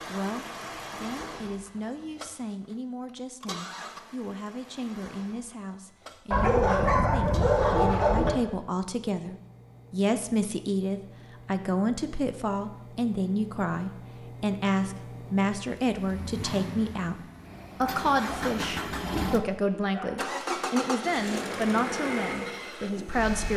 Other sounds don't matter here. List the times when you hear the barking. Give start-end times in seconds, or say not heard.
6.3-8.3, 17.8-20.2.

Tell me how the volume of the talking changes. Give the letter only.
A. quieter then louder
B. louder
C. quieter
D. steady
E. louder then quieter
B.